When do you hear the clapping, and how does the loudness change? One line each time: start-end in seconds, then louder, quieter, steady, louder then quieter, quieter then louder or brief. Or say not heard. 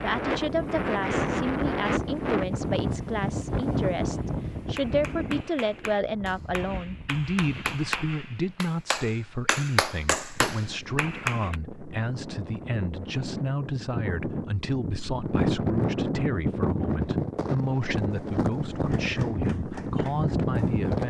4.8-11.6 louder
18.7-20.9 brief.